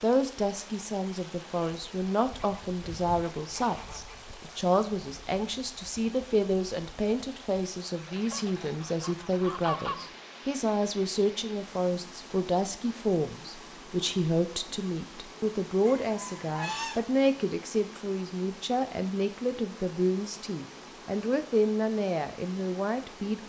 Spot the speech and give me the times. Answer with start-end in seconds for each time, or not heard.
0.0-23.4.